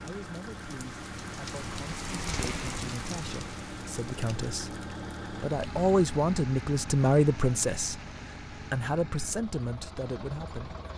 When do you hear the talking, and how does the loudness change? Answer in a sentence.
You can hear the talking from 0.0 to 10.8 s, getting louder then quieter.